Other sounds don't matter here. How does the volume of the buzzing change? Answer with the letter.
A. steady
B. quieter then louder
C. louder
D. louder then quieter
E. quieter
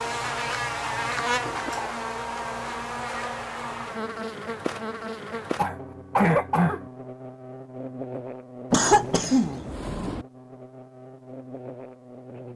E.